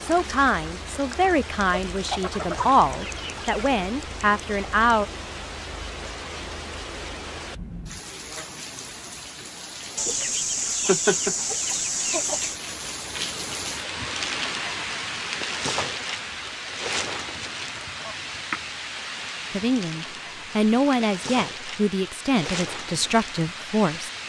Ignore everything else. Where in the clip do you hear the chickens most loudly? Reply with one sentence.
The volume of the chickens peaks at 11 seconds.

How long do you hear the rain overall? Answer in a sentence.
You can hear the rain for 24 seconds altogether.